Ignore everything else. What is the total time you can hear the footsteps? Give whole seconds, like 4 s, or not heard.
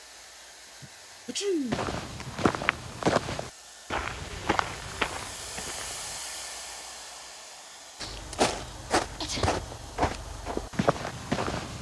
8 s.